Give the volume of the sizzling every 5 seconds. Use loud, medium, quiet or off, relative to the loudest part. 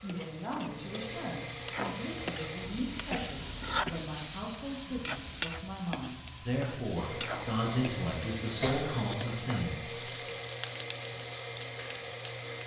loud, loud, medium.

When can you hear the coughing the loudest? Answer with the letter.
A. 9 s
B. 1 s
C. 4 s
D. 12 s
A.